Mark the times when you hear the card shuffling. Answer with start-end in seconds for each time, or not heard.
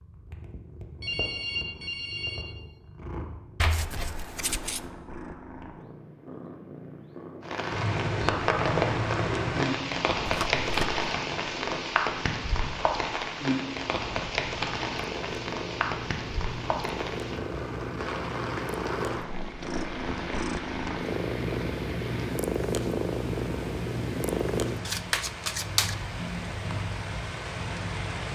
3.5-4.8, 10.2-11.1, 24.9-25.9.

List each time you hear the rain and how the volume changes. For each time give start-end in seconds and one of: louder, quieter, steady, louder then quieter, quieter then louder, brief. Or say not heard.
7.4-28.2 quieter.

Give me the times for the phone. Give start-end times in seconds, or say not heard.
1.0-2.5.